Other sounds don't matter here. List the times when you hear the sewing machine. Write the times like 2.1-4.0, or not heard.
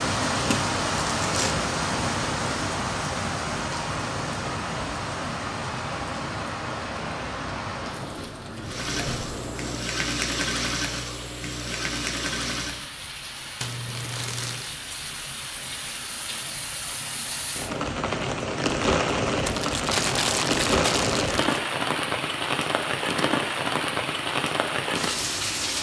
8.6-12.8.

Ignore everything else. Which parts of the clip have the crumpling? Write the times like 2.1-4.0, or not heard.
0.5-1.6, 13.6-14.7, 19.4-21.6.